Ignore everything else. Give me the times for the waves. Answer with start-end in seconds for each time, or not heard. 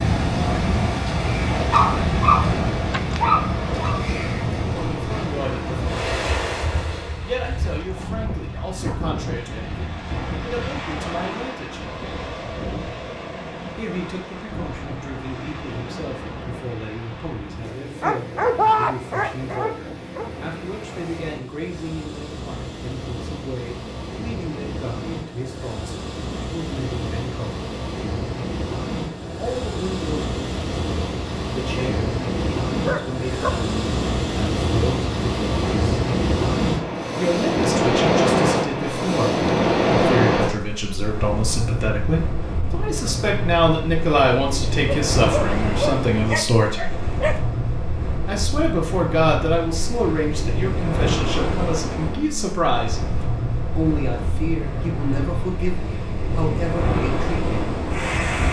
0.0-58.4.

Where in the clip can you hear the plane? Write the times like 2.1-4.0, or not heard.
not heard.